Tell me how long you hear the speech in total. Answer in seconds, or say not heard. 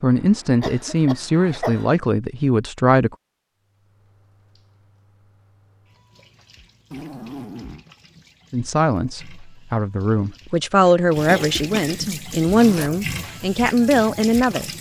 9 s.